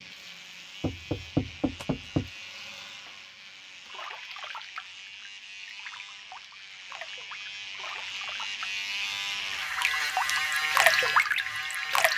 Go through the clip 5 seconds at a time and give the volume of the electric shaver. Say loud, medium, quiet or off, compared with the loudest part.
quiet, medium, loud.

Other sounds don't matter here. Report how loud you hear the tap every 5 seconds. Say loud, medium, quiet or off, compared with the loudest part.
quiet, quiet, loud.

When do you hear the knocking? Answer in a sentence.
You can hear the knocking from 0.8 to 2.3 s.